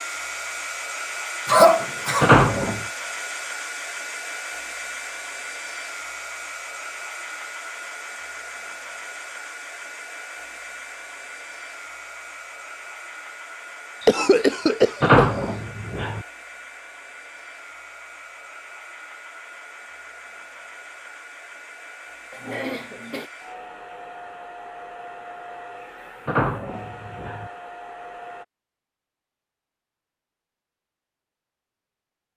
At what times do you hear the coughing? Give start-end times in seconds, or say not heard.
1.4-2.3, 14.0-15.4, 22.3-23.3.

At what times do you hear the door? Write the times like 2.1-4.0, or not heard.
2.2-2.8, 15.0-16.2, 26.2-27.5.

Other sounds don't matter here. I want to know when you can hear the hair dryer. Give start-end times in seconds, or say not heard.
0.0-28.4.